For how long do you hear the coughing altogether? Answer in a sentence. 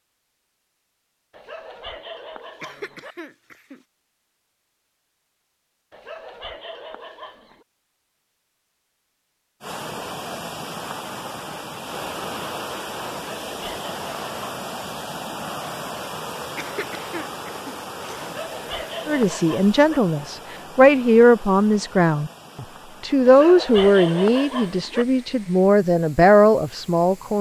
You can hear the coughing for 3 seconds altogether.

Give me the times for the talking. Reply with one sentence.
The talking can be heard from 19.1 to 27.3 s.